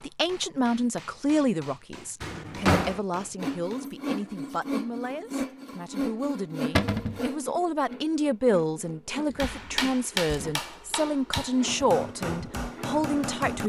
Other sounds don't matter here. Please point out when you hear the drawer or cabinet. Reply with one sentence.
You can hear the drawer or cabinet from 2.2 to 3.0 s, from 6.8 to 7.2 s and from 9.2 to 11.5 s.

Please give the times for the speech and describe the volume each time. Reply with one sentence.
The speech can be heard from 0.0 to 13.6 s, getting quieter then louder.